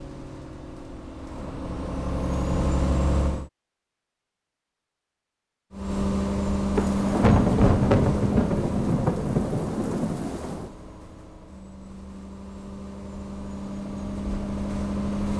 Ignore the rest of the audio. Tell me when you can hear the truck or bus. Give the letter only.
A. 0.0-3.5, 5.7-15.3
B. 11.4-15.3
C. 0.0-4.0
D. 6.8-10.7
A.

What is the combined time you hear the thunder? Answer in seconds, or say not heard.
4 s.